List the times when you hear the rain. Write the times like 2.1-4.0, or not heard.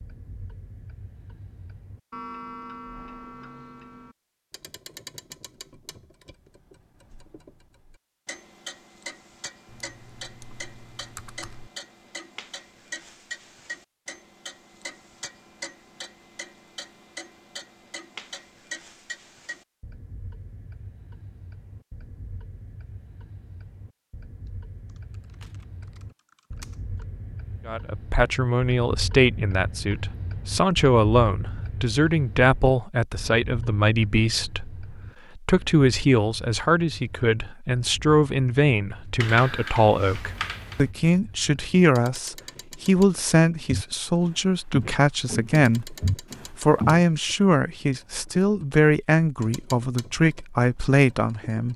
not heard.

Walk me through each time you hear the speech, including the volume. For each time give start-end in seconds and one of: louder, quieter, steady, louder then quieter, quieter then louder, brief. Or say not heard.
27.6-51.7 steady.